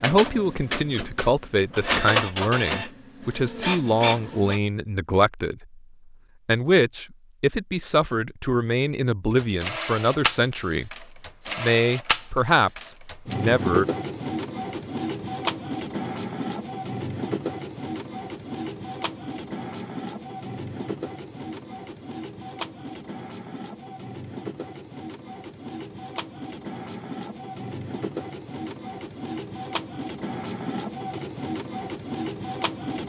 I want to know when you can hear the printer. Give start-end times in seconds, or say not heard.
0.0-4.6, 9.3-33.0.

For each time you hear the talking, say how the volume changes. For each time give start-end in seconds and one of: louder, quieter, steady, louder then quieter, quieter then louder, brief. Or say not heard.
0.0-5.8 steady
6.5-13.8 steady.